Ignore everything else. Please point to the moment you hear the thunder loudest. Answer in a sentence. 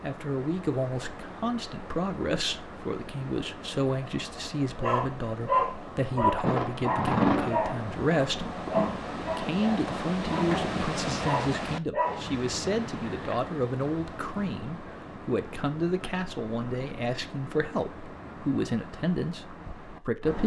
The volume of the thunder peaks at 7 seconds.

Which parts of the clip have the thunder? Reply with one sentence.
You can hear the thunder from 6.3 to 10.8 s.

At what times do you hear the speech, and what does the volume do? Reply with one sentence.
The speech can be heard from 0.0 to 20.4 s, at a steady volume.